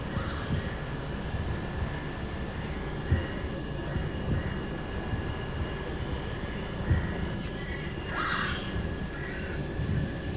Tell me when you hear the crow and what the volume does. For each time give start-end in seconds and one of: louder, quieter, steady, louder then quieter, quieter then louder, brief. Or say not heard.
0.0-10.3 steady.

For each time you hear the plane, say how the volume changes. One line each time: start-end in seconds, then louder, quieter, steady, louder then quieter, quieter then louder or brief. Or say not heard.
0.0-10.3 steady.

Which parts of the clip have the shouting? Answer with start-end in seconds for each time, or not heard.
0.1-0.6, 8.1-8.7.